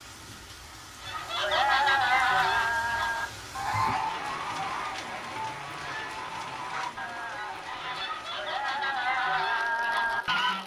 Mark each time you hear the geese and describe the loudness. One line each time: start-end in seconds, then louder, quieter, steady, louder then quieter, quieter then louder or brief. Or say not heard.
1.0-10.6 quieter then louder.